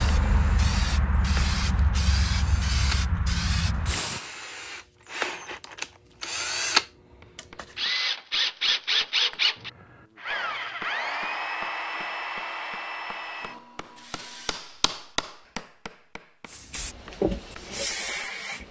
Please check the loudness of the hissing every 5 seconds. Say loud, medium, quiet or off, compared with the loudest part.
loud, off, off, loud.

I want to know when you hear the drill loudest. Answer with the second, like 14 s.
9 s.